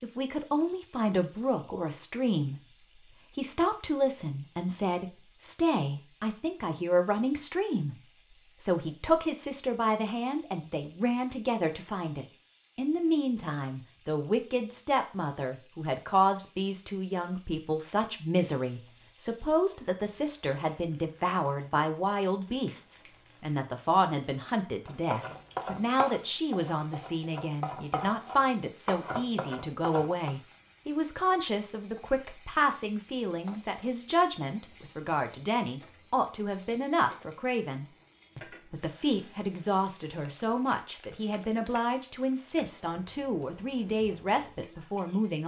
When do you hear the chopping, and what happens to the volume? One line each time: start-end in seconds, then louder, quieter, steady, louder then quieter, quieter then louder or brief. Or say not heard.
24.9-30.3 quieter then louder.